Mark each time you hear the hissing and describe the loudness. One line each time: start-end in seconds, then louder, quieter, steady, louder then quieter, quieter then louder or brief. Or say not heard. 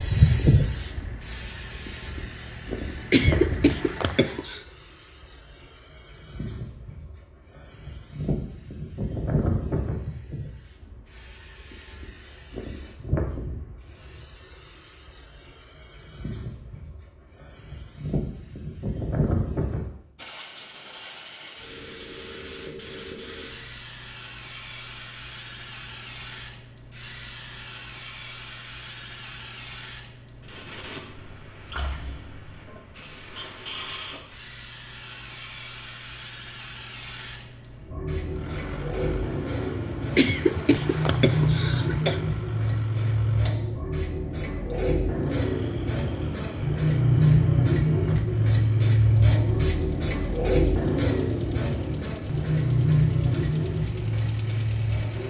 0.0-55.2 quieter then louder.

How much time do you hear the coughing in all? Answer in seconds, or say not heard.
4 s.